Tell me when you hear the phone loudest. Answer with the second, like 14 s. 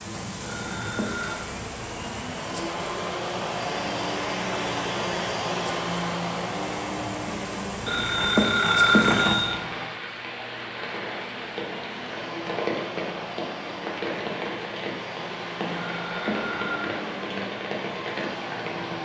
9 s.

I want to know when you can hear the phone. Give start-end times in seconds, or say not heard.
0.5-1.4, 7.8-9.6, 15.9-16.9.